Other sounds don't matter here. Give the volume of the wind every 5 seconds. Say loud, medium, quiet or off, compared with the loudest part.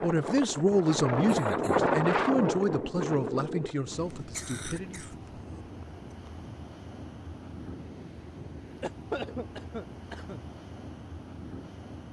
loud, quiet, quiet.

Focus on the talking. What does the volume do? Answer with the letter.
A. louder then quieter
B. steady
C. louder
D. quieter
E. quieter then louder
D.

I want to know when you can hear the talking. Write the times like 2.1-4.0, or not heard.
0.0-5.0.